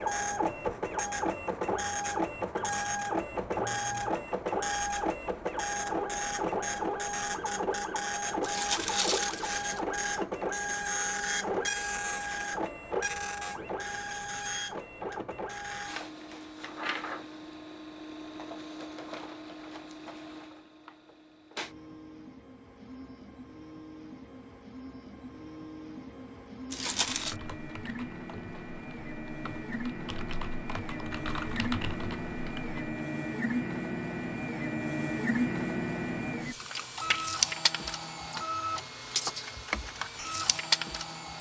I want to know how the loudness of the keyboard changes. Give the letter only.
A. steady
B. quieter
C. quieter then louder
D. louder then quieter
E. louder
E.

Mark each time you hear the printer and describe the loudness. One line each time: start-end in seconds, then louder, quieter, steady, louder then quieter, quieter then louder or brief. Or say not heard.
0.0-41.3 quieter then louder.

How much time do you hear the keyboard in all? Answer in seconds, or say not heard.
6 s.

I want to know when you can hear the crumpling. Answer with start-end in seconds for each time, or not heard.
8.4-9.8, 26.7-27.4.